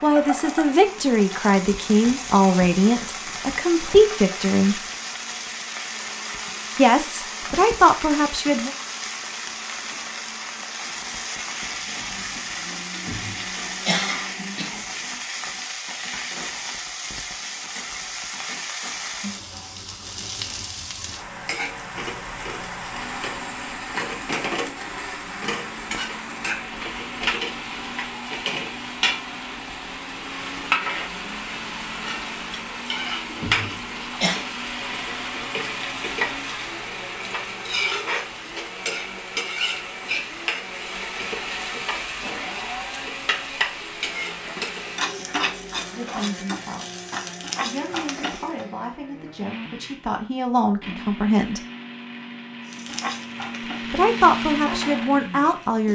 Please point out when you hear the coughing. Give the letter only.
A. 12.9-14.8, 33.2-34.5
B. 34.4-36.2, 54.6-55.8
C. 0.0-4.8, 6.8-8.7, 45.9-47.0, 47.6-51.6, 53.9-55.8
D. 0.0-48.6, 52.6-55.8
A.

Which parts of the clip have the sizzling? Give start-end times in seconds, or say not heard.
0.0-48.6, 52.6-55.8.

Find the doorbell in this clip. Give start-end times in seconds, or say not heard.
not heard.